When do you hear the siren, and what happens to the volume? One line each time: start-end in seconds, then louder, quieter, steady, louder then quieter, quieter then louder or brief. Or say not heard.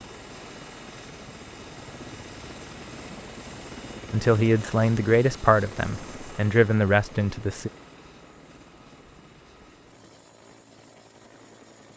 not heard.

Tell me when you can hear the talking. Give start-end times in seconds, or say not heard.
4.1-7.7.